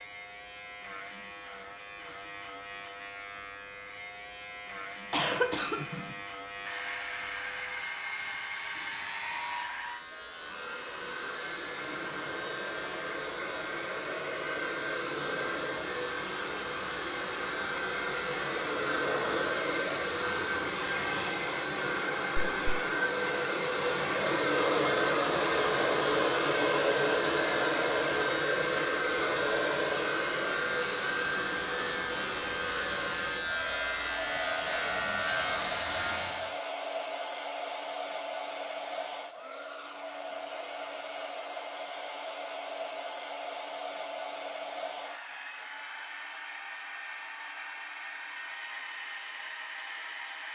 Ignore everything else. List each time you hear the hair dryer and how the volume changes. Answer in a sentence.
You can hear the hair dryer from 6.6 to 50.4 s, getting louder then quieter.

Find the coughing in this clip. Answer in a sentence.
The coughing can be heard from 5.1 to 6.2 s.